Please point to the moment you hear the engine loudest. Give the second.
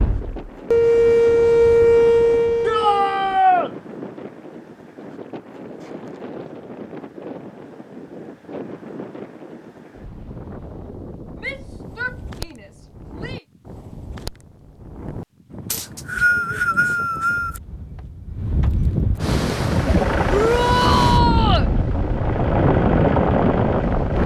23 s.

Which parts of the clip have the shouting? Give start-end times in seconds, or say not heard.
2.6-3.7, 11.4-13.4, 20.2-21.7.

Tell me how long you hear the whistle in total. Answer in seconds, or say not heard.
2 s.